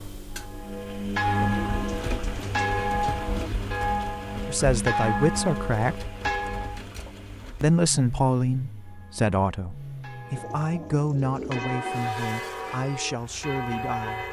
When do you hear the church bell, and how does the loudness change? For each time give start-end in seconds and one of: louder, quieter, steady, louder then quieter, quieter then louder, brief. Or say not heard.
0.3-6.8 steady
8.8-14.2 louder.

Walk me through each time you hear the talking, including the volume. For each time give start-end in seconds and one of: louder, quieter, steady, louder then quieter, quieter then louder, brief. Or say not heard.
4.5-6.1 brief
7.6-14.2 quieter.